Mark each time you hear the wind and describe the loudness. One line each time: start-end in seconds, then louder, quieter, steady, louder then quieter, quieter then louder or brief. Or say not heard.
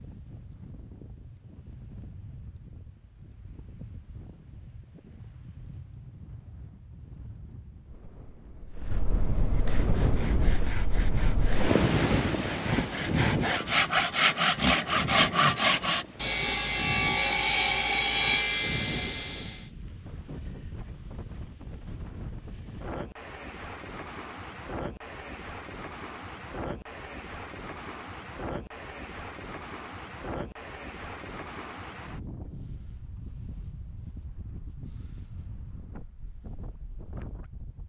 0.0-37.8 louder then quieter.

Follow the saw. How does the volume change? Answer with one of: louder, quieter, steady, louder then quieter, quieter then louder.
louder.